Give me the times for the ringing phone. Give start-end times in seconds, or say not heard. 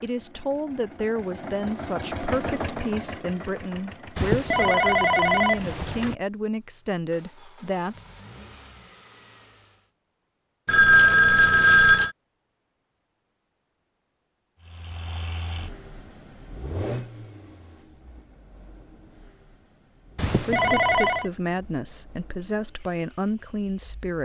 4.2-6.2, 10.7-12.1, 20.1-21.2.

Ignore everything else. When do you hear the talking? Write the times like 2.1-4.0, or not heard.
0.0-8.0, 20.3-24.2.